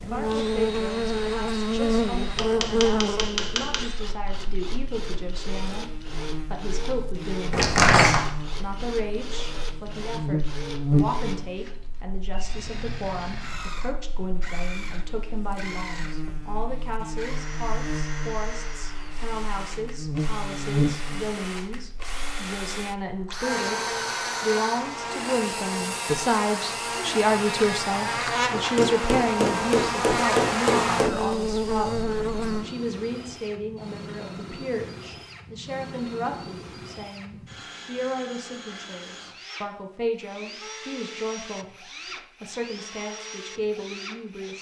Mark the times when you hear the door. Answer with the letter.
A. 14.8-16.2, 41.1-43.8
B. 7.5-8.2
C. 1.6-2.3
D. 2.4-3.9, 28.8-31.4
B.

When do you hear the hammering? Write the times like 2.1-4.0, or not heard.
2.4-3.9, 28.8-31.4.